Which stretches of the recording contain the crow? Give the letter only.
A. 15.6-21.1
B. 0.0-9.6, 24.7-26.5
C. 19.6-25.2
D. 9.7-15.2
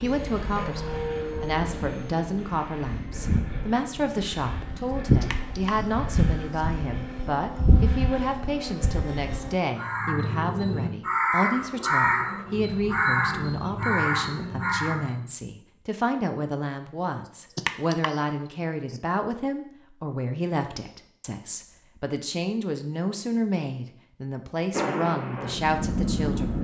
D.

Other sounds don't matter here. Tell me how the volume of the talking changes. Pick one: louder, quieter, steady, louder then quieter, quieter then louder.
steady.